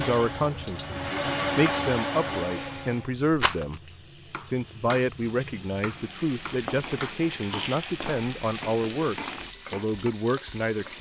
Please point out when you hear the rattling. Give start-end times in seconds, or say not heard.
3.3-3.8, 7.4-8.2.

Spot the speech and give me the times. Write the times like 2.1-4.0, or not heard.
0.0-3.8, 4.5-10.9.